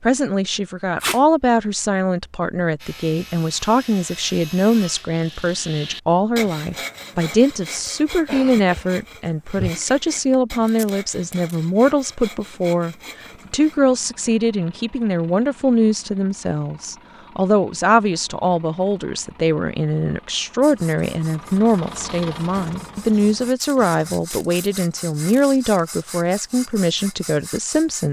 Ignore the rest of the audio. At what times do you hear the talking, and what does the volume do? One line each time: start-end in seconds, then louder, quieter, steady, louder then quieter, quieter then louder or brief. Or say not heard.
0.0-28.0 steady.